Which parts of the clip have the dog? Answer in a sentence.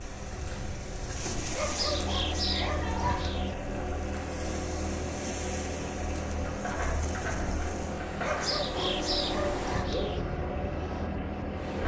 The dog can be heard from 1.6 to 3.5 s and from 8.2 to 10.2 s.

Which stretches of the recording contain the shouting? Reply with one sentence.
The shouting can be heard from 2.4 to 3.4 s.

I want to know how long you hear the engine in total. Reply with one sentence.
The engine can be heard for 12 seconds in total.